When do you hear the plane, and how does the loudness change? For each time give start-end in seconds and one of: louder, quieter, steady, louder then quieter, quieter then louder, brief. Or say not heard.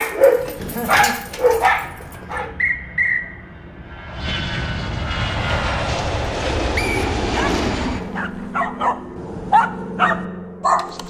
0.1-11.0 louder then quieter.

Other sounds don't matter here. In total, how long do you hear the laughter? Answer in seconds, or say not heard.
2 s.